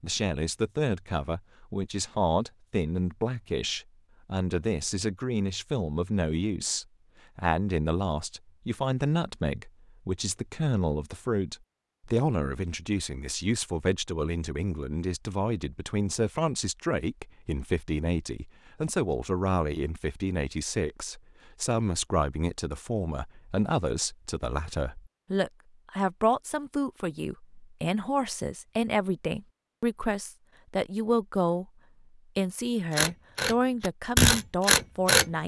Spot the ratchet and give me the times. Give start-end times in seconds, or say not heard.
33.0-35.2.